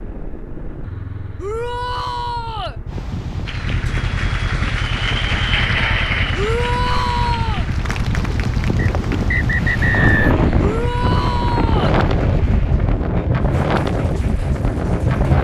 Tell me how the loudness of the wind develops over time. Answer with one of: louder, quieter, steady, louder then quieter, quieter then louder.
louder.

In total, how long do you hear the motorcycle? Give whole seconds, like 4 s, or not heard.
13 s.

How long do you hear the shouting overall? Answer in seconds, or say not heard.
4 s.